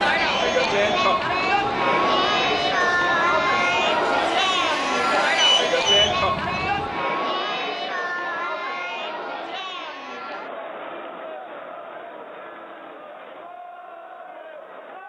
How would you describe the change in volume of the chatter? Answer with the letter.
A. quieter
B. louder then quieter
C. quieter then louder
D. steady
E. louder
A.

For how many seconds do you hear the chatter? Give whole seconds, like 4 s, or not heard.
15 s.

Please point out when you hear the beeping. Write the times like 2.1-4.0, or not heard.
5.3-6.2.